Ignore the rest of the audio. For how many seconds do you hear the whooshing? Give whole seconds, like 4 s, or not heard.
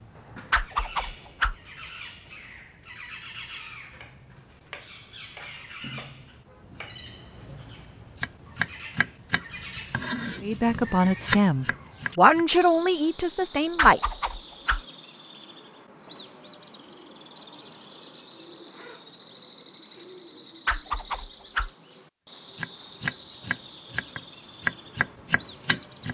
3 s.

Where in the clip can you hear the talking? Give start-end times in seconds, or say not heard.
10.4-14.0.